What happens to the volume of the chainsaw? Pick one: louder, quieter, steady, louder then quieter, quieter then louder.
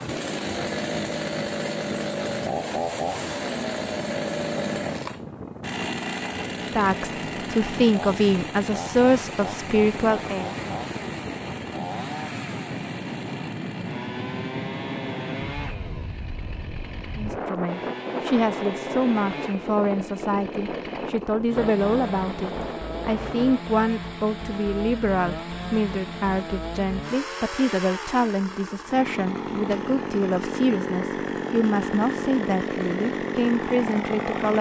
quieter then louder.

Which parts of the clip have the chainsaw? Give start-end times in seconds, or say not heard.
0.0-34.5.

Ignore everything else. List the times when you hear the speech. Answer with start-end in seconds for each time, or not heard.
6.7-10.5, 17.1-34.5.